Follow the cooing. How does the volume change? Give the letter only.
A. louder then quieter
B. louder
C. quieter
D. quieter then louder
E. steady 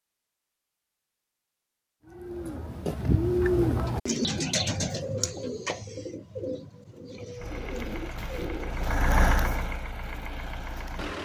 C.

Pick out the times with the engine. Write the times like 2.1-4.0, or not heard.
7.3-11.1.